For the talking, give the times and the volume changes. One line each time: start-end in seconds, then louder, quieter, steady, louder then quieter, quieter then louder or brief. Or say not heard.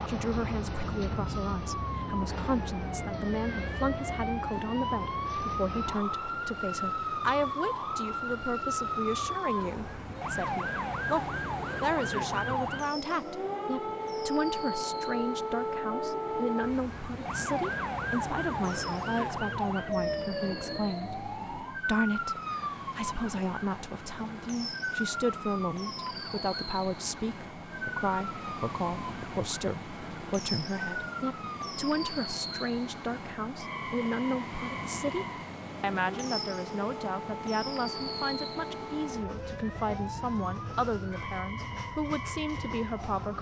0.1-43.3 steady.